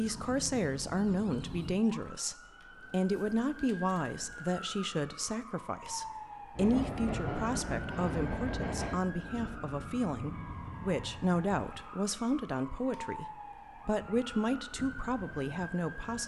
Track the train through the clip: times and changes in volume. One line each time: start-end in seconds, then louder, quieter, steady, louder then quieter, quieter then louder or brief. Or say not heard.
6.5-11.3 quieter.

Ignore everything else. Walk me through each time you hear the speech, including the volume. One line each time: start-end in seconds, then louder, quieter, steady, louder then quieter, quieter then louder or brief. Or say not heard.
0.0-16.2 steady.